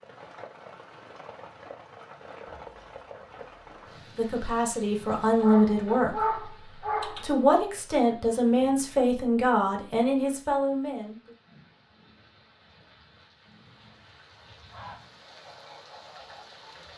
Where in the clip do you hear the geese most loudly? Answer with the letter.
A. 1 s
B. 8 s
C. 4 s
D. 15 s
D.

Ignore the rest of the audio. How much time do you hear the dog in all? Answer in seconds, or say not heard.
2 s.